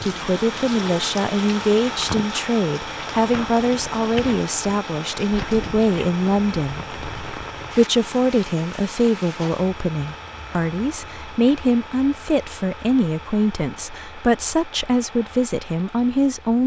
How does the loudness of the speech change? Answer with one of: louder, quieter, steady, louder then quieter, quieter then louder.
steady.